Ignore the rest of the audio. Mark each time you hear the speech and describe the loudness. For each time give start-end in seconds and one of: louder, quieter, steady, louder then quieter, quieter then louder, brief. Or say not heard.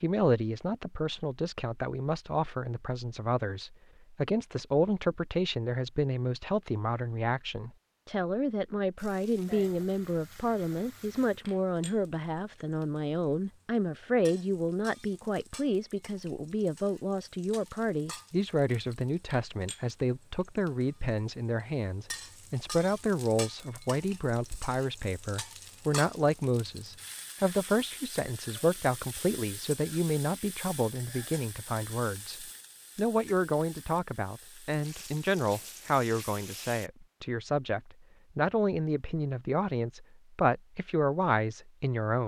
0.0-42.2 steady.